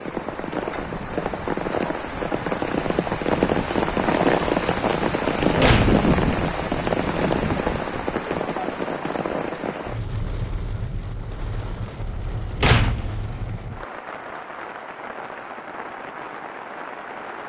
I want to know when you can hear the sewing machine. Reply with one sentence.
The sewing machine can't be heard in this clip.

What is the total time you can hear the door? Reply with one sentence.
You can hear the door for 2 seconds altogether.